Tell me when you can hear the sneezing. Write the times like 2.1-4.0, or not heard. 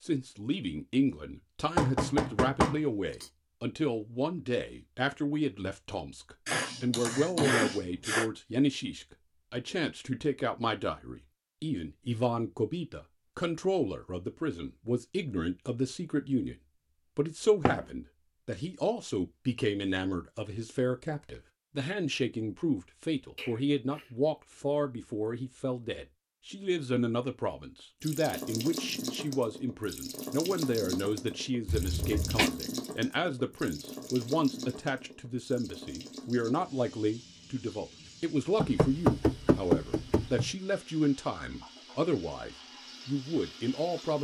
6.5-8.3, 23.4-24.1, 31.6-32.5.